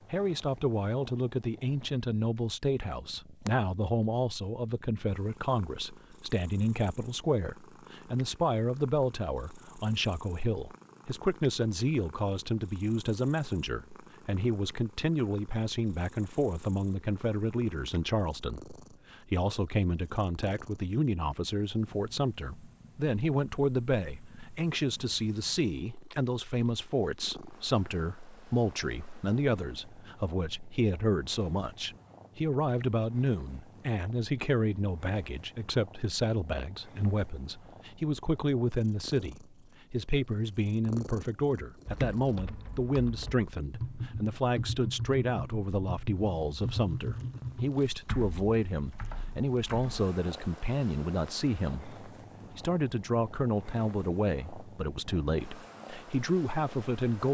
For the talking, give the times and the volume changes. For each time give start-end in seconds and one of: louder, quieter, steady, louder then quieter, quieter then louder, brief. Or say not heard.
0.1-57.2 steady.